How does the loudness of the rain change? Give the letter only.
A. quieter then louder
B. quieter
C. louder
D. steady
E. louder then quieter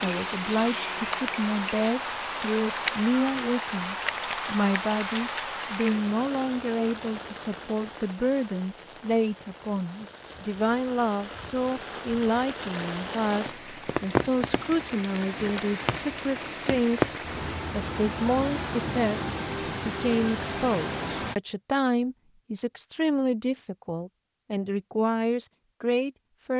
A.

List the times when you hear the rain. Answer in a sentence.
The rain can be heard from 0.0 to 21.4 s.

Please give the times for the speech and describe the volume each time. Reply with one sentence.
You can hear the speech from 0.0 to 26.5 s, at a steady volume.